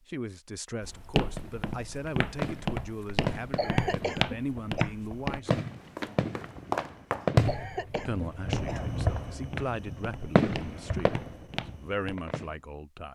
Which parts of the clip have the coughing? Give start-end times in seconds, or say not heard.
3.5-4.9, 7.5-8.9.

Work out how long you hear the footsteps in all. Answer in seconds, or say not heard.
11 s.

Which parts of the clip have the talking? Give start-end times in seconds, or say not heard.
0.1-5.6, 8.1-13.0.